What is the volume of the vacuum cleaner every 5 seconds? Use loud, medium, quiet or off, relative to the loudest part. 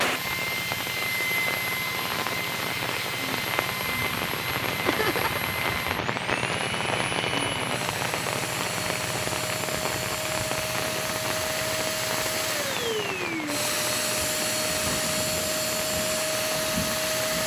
loud, medium, loud, loud.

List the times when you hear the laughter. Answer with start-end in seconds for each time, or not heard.
4.8-5.5.